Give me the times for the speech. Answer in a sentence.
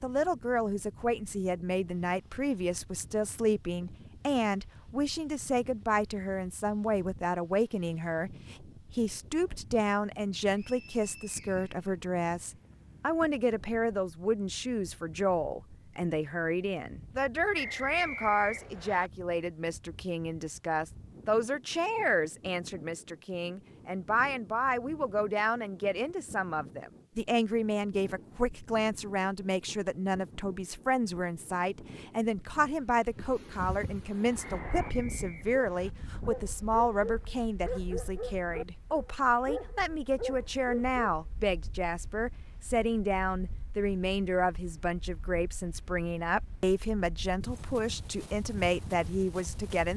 The speech can be heard from 0.0 to 49.9 s.